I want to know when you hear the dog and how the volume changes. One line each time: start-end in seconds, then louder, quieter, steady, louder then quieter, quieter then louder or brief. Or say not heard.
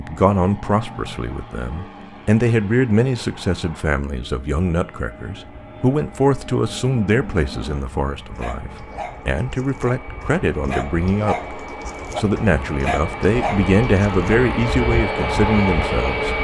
8.3-14.3 louder.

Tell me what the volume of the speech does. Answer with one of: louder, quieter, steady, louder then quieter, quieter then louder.
steady.